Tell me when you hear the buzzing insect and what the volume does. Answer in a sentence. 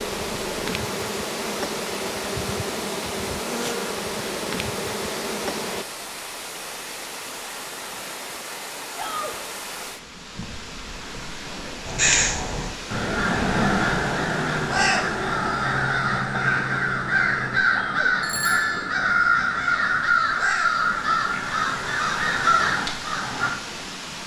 The buzzing insect can be heard from 0.0 to 5.8 s, at a steady volume.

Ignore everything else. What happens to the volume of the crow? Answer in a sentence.
The volume of the crow stays about the same.